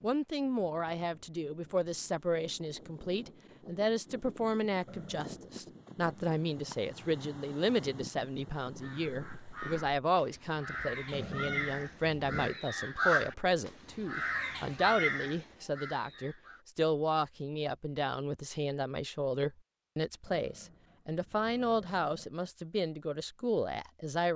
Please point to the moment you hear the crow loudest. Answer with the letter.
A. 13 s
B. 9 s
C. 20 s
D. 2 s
A.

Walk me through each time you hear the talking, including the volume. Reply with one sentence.
The talking can be heard from 0.0 to 24.3 s, at a steady volume.